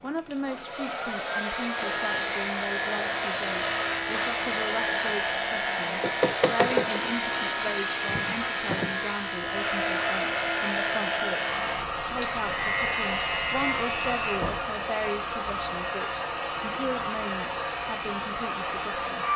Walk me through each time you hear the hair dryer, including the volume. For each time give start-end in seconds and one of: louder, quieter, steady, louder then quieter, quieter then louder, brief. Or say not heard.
0.0-19.3 steady.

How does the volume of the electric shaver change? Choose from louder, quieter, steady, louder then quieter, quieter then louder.
steady.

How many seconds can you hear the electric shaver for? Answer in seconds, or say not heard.
13 s.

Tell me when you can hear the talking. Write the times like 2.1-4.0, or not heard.
0.0-19.2.